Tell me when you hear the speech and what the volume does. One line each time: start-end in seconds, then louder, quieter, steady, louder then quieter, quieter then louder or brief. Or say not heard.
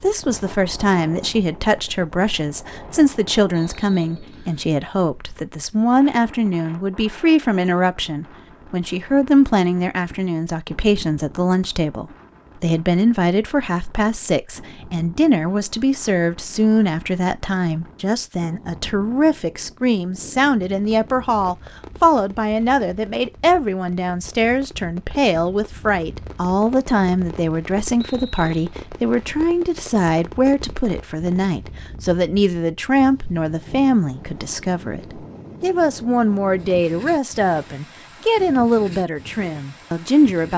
0.0-40.5 steady.